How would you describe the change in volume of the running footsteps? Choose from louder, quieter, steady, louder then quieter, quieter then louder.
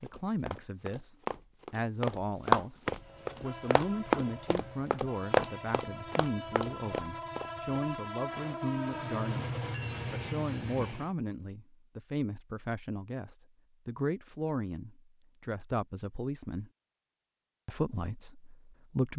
louder then quieter.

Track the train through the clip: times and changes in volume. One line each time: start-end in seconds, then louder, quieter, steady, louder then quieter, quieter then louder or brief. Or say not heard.
3.0-11.2 louder.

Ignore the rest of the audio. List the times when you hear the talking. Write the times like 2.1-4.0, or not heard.
0.0-2.8, 3.4-9.5, 10.1-16.7, 17.6-19.1.